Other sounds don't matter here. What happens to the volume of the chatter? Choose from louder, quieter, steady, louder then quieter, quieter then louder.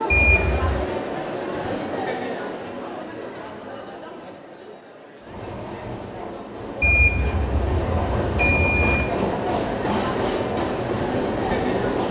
quieter then louder.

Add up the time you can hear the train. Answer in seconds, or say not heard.
7 s.